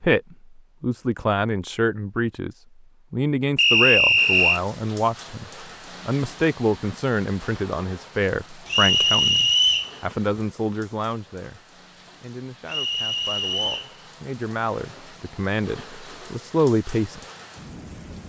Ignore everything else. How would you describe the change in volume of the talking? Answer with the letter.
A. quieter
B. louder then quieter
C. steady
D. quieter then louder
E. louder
D.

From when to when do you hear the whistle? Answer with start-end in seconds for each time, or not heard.
3.5-4.6, 8.7-9.9, 12.7-13.9.